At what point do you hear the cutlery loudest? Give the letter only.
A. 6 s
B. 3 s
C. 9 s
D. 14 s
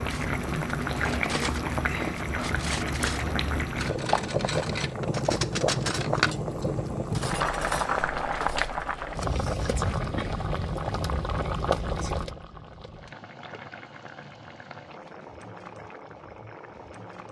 A.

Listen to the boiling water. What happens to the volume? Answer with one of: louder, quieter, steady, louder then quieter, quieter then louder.
quieter.